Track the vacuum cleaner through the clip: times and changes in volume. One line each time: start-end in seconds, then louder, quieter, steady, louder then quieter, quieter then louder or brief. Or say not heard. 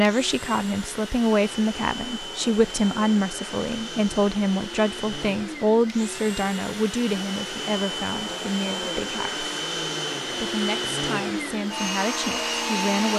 0.0-13.1 louder.